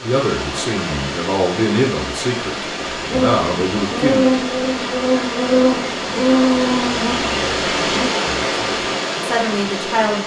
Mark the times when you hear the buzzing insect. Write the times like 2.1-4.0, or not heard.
2.8-8.1.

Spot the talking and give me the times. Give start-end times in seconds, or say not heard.
0.0-4.2, 8.2-10.2.